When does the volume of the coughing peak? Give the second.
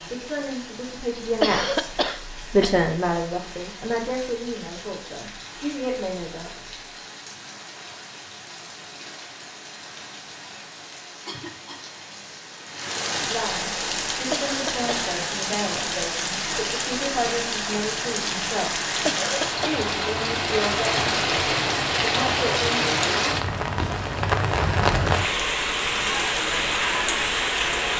2 s.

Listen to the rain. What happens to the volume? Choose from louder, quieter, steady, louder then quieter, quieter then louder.
louder.